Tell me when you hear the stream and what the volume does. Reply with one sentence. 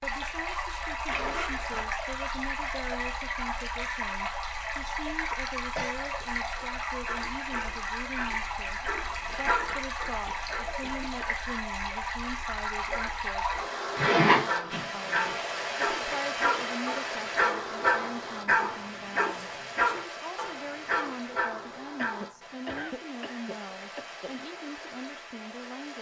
The stream can be heard from 0.0 to 25.9 s, getting quieter.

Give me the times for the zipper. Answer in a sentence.
You can hear the zipper from 1.1 to 1.9 s and from 13.9 to 15.3 s.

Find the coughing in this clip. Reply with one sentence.
You can hear the coughing from 5.5 to 6.0 s, from 9.2 to 11.2 s and from 21.9 to 24.4 s.